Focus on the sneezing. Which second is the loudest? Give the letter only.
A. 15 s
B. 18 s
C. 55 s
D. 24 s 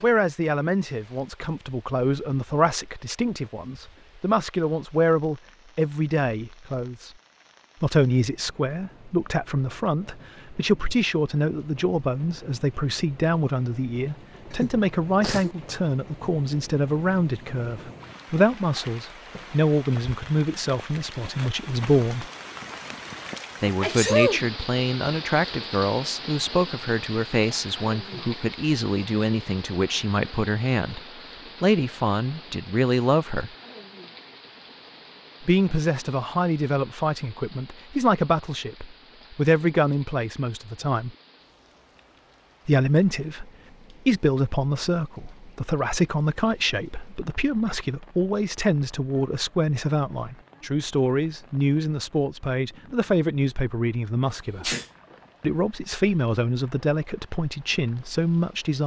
D.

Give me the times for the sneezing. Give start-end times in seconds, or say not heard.
14.5-15.6, 23.8-24.4, 54.2-54.9.